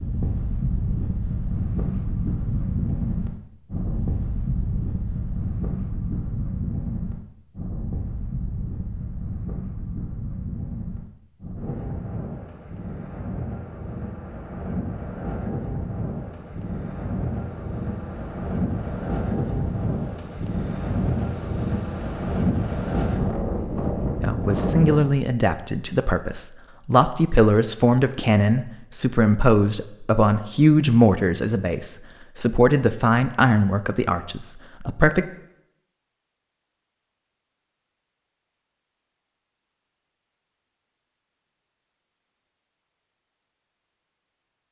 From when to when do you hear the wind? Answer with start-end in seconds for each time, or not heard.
0.0-25.1.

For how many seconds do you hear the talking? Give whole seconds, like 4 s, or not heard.
11 s.